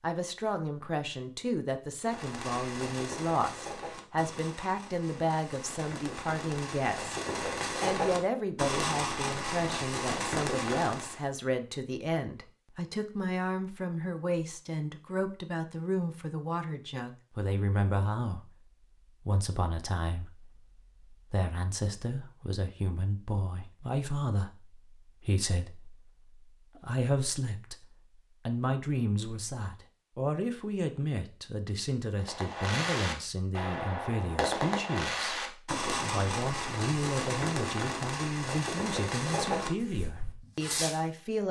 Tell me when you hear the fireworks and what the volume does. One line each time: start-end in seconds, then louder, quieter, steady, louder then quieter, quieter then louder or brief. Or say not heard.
2.0-11.2 quieter then louder
32.1-41.0 steady.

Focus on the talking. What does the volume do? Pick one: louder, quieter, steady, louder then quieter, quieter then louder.
steady.